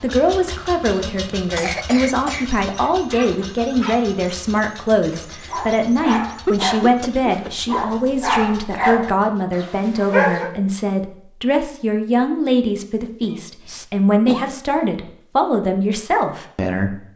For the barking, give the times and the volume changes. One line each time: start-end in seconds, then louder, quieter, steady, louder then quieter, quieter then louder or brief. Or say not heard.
2.8-10.5 louder.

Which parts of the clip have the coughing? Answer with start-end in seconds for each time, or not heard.
0.5-2.5, 6.5-7.7, 13.0-14.6.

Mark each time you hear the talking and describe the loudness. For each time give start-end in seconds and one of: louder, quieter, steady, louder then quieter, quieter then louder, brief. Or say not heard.
0.0-17.1 steady.